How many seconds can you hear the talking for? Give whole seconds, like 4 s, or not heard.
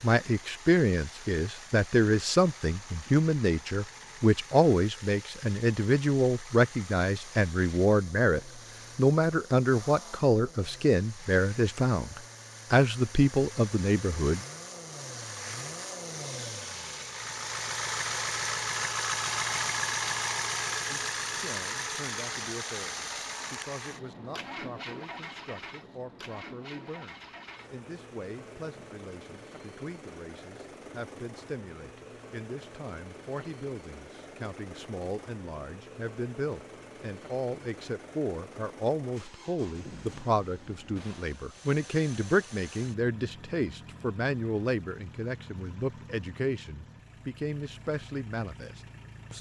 43 s.